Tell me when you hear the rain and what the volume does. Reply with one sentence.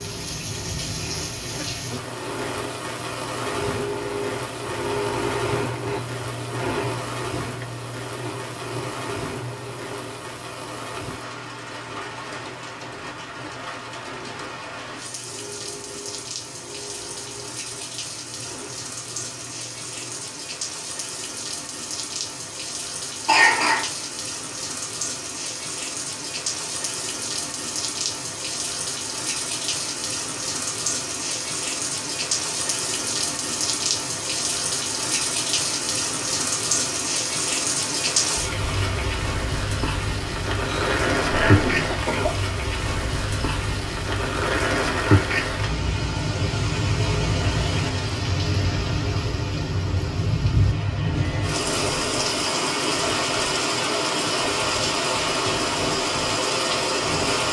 You can hear the rain from 0.0 to 57.4 s, getting louder.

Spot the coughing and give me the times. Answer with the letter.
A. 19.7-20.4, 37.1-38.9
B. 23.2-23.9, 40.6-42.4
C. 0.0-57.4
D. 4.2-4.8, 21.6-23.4
B.